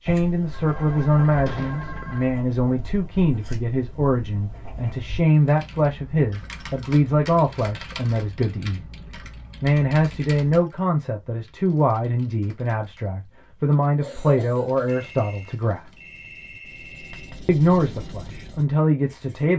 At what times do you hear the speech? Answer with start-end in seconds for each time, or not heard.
0.0-8.8, 9.6-15.9, 17.4-19.5.